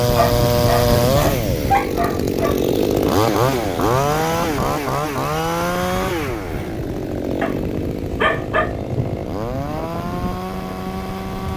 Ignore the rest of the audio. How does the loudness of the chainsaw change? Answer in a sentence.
The loudness of the chainsaw goes down.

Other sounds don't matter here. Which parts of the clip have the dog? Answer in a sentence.
You can hear the dog from 0.1 to 2.6 s and from 7.4 to 9.2 s.